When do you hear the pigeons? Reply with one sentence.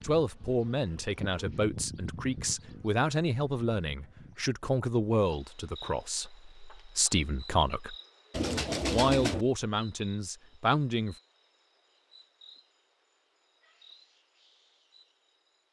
The pigeons can be heard from 8.3 to 9.4 s.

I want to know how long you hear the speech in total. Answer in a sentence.
You can hear the speech for 10 seconds altogether.